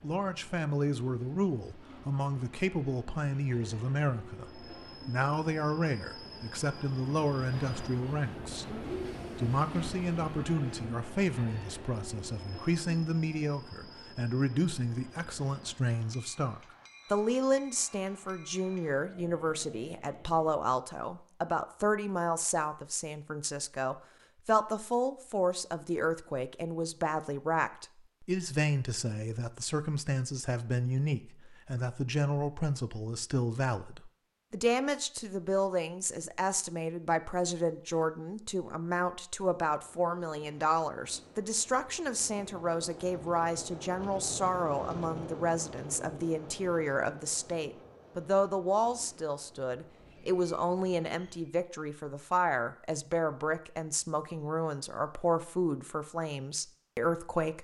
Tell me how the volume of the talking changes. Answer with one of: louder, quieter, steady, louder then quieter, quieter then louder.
steady.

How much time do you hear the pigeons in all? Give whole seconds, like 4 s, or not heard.
not heard.